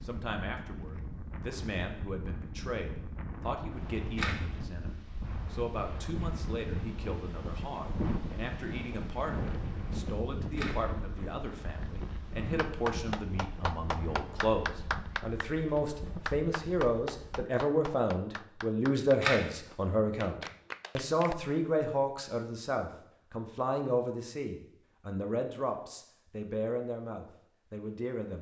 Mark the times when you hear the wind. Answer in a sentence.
The wind can be heard from 0.0 to 17.4 s.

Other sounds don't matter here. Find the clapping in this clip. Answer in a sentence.
You can hear the clapping from 12.6 to 21.4 s.